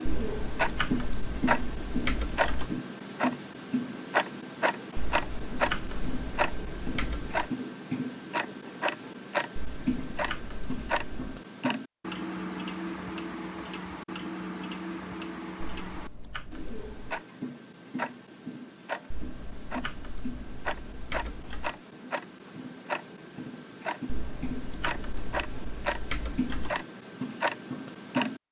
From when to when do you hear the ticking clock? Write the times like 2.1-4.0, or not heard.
0.0-28.4.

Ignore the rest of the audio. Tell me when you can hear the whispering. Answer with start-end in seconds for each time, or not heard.
not heard.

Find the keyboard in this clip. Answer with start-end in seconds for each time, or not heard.
0.1-2.8, 5.0-7.5, 9.6-11.4, 15.6-17.2, 19.1-21.8, 24.1-26.8.